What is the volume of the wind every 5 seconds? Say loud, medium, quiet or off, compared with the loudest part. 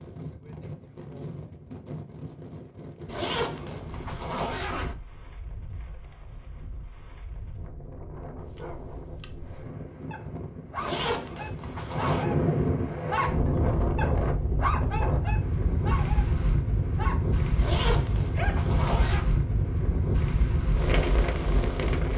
quiet, quiet, loud, loud, loud.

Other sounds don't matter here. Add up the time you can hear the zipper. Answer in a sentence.
You can hear the zipper for 5 seconds altogether.